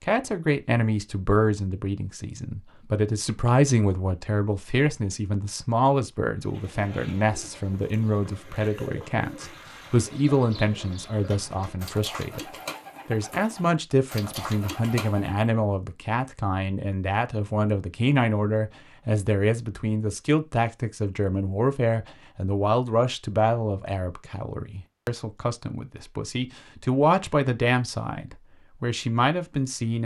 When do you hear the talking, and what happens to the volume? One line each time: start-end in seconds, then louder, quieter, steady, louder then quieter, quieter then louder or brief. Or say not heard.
0.0-30.0 steady.